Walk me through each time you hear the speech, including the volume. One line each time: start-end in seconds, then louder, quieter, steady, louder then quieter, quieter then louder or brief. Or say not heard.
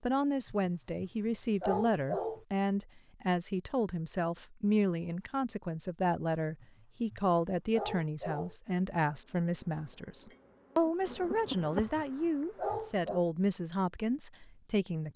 0.0-15.1 steady.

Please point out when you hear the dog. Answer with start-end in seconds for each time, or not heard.
0.5-2.5, 6.6-8.6, 11.4-13.2.